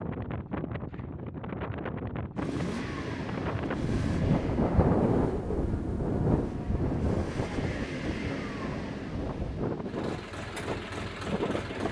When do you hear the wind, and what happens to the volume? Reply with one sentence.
You can hear the wind from 0.0 to 11.8 s, getting louder then quieter.